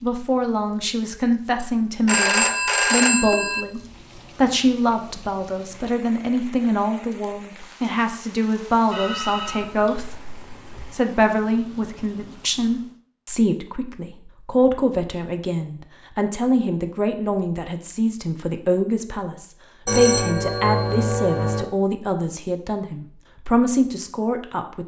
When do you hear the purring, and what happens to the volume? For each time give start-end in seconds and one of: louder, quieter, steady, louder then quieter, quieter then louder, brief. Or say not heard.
not heard.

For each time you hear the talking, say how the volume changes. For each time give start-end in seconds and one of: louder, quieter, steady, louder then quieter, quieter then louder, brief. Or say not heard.
0.0-24.8 steady.